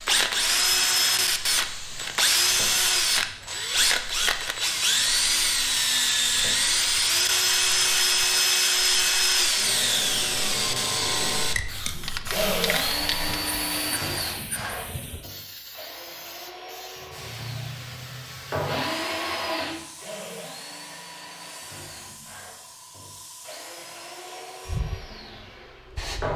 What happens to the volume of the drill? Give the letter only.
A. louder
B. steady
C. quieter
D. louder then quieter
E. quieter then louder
C.